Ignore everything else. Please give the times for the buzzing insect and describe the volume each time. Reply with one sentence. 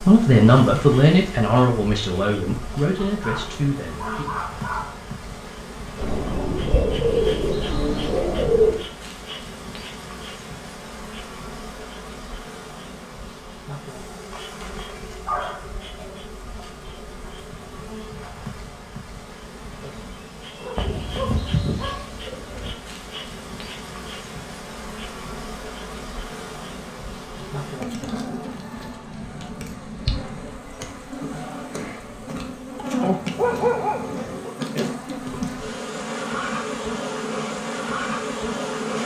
You can hear the buzzing insect from 0.0 to 39.0 s, getting louder.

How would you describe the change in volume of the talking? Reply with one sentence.
The volume of the talking goes down.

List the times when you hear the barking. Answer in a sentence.
The barking can be heard from 3.0 to 5.0 s, from 15.2 to 16.2 s, from 20.6 to 22.0 s and from 33.0 to 34.5 s.